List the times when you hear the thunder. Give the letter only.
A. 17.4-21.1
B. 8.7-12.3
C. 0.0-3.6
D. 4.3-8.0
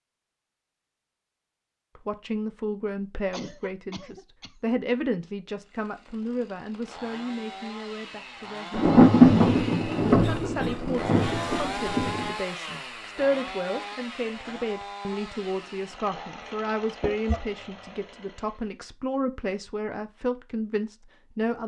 B.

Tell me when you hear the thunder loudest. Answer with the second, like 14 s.
9 s.